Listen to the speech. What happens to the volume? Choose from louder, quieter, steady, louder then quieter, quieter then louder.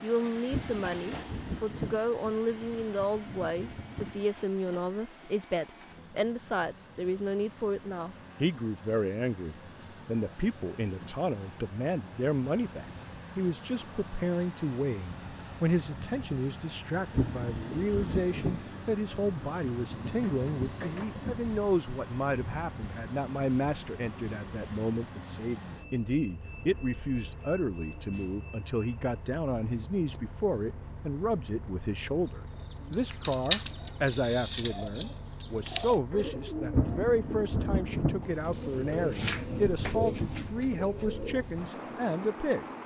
steady.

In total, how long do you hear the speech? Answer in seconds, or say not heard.
43 s.